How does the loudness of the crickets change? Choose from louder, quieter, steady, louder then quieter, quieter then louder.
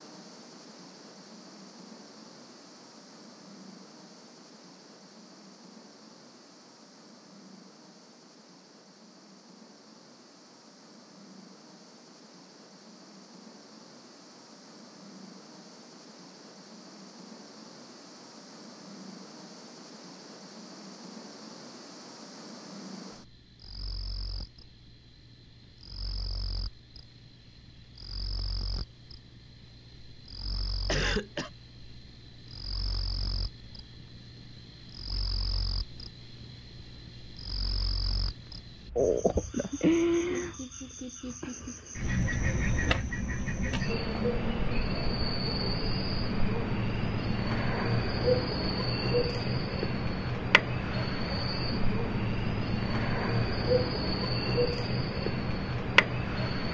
louder.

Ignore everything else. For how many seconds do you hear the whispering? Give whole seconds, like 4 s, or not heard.
not heard.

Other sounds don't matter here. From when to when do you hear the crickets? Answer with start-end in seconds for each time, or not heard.
0.0-56.6.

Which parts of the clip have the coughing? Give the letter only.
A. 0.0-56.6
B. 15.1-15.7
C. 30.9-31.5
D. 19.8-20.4
C.